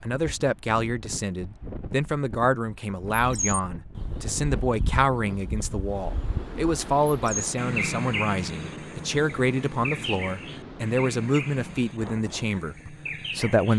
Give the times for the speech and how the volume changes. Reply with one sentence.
You can hear the speech from 0.0 to 13.7 s, at a steady volume.